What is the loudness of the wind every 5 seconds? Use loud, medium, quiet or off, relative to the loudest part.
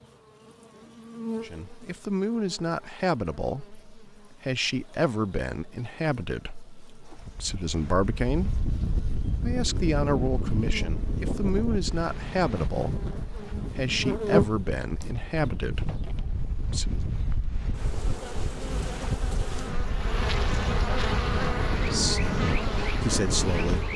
off, loud, loud, medium, loud.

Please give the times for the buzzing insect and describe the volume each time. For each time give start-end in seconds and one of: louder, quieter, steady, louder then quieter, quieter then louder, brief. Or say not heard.
0.0-23.9 quieter then louder.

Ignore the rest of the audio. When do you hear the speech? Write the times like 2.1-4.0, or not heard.
1.4-8.5, 9.3-17.0, 21.8-23.9.